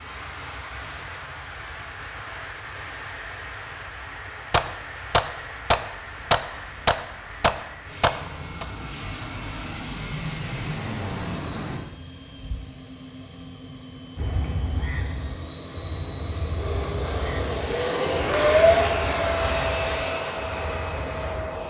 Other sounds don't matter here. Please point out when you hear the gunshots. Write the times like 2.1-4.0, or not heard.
4.5-8.7.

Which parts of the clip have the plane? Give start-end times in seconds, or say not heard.
0.0-21.6.